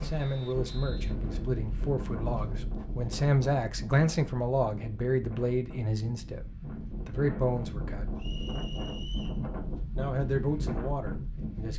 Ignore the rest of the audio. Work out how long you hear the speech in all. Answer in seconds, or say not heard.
9 s.